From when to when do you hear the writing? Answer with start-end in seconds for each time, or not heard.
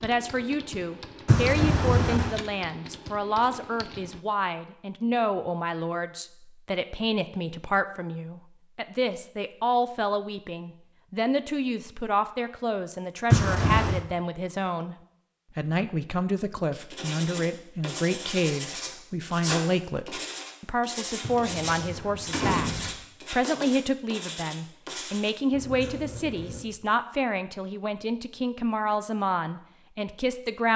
16.7-26.6.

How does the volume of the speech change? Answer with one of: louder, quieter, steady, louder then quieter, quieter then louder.
steady.